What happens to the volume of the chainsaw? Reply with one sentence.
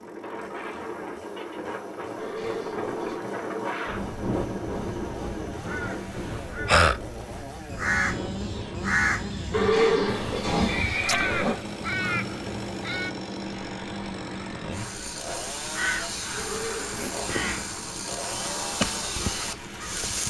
The loudness of the chainsaw goes up.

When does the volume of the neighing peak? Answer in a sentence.
The volume of the neighing peaks at 10 seconds.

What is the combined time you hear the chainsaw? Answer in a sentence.
You can hear the chainsaw for 20 seconds altogether.